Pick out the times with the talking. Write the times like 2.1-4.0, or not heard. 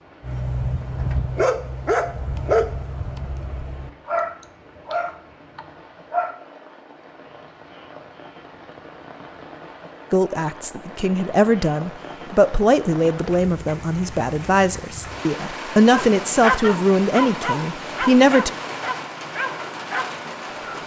10.1-18.5.